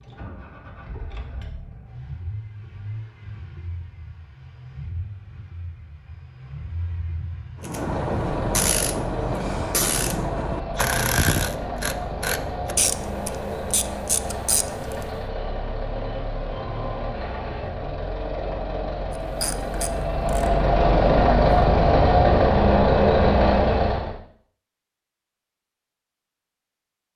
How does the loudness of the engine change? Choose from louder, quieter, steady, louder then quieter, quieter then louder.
louder.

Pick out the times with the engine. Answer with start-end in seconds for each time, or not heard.
0.0-24.1.